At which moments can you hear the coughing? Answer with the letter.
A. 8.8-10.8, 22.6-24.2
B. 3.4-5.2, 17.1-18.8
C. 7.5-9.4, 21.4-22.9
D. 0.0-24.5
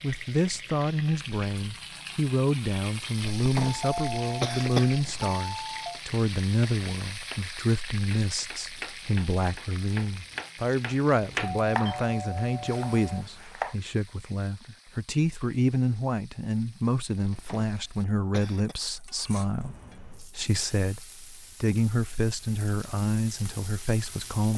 B.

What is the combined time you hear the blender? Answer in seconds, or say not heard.
not heard.